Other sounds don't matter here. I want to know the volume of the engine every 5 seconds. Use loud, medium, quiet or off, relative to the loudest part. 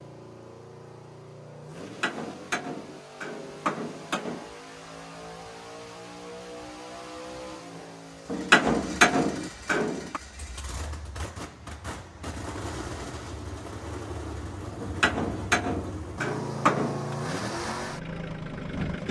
medium, medium, medium, loud.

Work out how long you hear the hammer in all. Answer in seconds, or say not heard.
7 s.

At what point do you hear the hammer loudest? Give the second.
9 s.